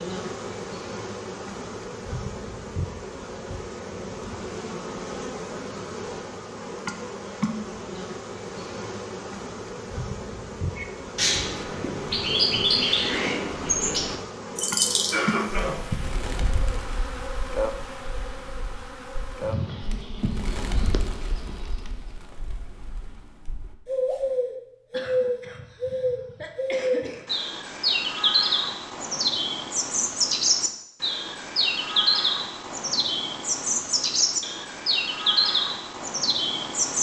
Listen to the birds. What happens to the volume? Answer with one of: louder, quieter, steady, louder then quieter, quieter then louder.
quieter then louder.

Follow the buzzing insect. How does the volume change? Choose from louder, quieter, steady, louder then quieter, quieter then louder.
steady.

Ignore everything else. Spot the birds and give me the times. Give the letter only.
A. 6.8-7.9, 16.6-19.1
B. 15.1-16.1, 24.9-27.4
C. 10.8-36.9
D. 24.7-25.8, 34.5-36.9
C.